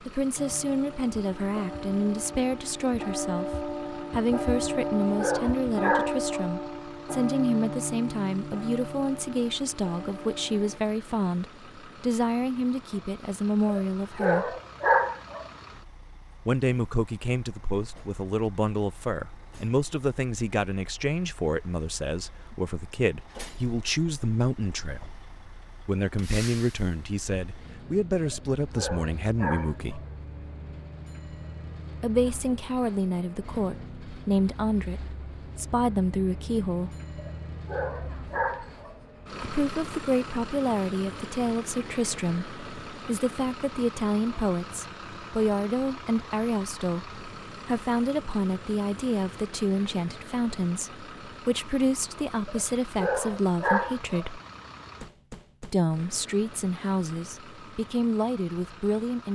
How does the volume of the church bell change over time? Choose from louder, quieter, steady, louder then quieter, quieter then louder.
louder then quieter.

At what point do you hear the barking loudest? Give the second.
15 s.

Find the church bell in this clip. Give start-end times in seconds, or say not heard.
0.3-10.8.